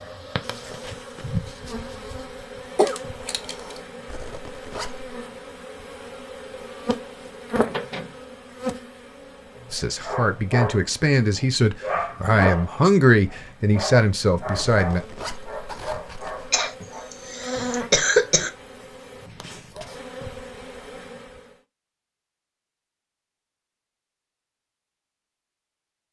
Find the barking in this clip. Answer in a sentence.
You can hear the barking from 9.6 to 17.1 s.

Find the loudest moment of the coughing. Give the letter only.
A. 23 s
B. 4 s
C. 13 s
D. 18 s
D.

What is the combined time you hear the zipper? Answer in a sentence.
The zipper can be heard for 3 seconds in total.